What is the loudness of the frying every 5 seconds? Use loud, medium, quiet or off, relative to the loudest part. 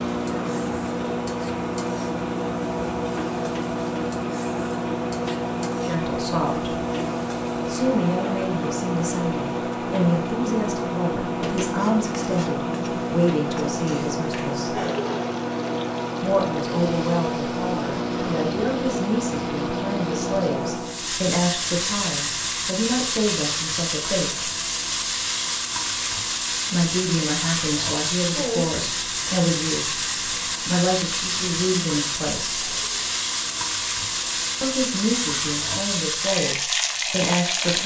quiet, quiet, quiet, quiet, loud, loud, loud, loud.